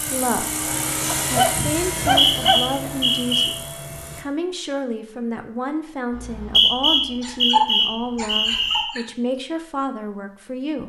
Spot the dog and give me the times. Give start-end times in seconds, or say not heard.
1.1-2.7, 7.2-9.1.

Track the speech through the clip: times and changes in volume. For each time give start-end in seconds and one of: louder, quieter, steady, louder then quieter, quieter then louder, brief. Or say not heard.
0.1-10.8 steady.